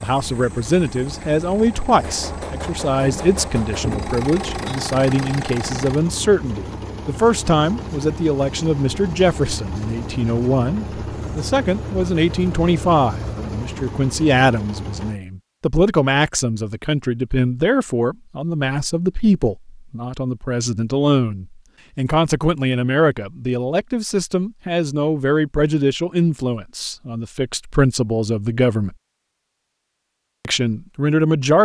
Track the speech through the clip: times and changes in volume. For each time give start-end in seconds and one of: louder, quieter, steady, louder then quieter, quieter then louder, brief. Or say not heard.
0.0-28.9 steady
30.4-31.6 brief.